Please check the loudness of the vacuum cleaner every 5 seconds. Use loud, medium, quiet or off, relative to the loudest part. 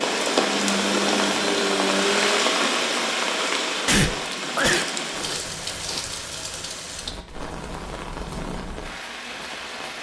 loud, off.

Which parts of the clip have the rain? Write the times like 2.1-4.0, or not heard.
0.0-9.9.